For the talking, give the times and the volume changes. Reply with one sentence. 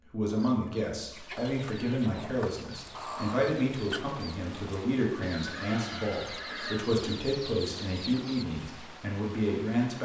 You can hear the talking from 0.1 to 9.9 s, at a steady volume.